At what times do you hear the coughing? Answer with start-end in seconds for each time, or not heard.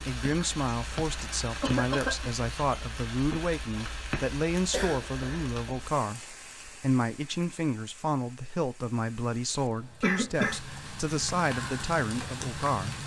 1.6-2.3, 4.7-5.5, 10.0-10.6.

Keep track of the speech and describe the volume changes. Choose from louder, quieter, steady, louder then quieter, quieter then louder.
steady.